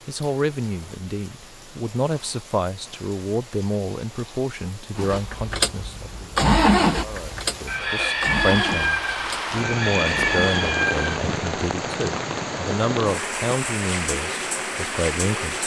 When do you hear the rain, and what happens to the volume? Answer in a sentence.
The rain can be heard from 0.0 to 15.6 s, getting louder.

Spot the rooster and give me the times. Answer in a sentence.
The rooster can be heard from 7.7 to 11.2 s.